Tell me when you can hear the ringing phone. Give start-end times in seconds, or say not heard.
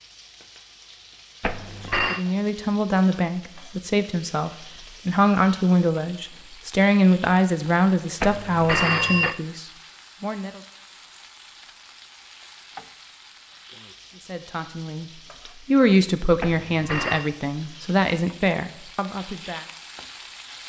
1.4-2.2, 8.2-9.3, 16.4-17.3.